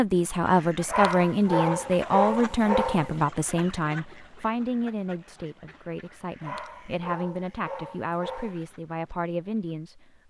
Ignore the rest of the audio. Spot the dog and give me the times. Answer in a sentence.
The dog can be heard from 0.8 to 3.1 s and from 6.4 to 8.6 s.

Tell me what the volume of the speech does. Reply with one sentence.
The loudness of the speech goes down.